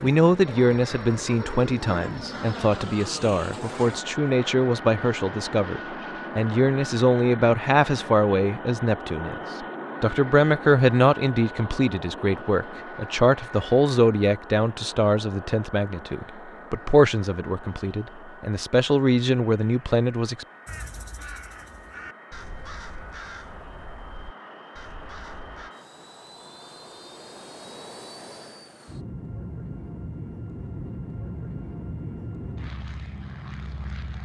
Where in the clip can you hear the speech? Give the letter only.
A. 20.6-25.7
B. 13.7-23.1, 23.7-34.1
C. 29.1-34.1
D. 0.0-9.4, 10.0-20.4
D.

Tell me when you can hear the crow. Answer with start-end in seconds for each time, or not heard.
20.6-25.7.